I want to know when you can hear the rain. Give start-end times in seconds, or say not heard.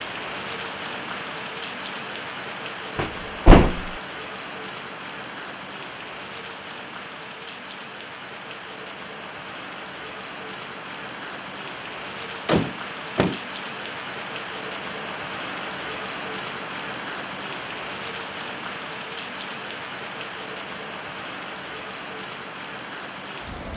0.0-23.7.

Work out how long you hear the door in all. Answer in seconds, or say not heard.
2 s.